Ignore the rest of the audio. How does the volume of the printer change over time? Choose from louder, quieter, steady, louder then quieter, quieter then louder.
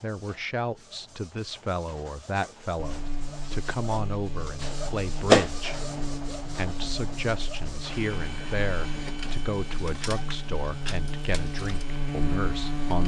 louder then quieter.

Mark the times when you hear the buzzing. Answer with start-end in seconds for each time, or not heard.
2.8-13.0.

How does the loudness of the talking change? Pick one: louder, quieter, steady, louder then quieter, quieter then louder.
steady.